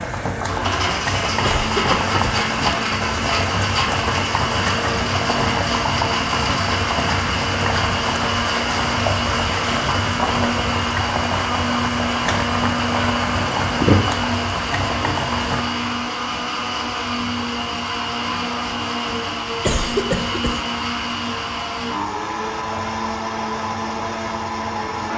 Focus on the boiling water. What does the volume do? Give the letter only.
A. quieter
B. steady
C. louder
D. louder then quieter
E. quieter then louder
A.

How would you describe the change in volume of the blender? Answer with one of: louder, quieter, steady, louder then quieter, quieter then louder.
steady.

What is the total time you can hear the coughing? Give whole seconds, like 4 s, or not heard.
2 s.